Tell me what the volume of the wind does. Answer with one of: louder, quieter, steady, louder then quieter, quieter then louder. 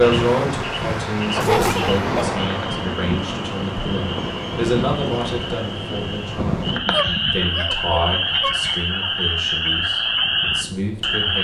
quieter.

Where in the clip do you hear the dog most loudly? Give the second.
2 s.